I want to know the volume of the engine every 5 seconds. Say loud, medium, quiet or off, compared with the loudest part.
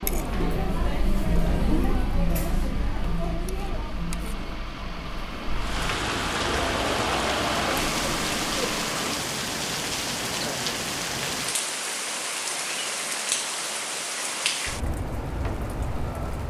medium, loud, off, off.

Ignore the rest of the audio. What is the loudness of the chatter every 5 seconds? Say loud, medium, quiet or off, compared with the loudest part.
loud, loud, off, off.